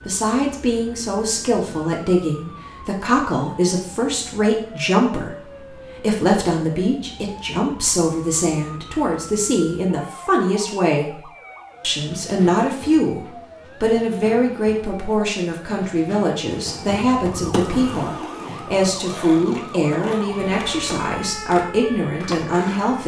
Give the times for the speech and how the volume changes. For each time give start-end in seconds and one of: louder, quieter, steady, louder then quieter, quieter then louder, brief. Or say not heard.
0.1-23.0 steady.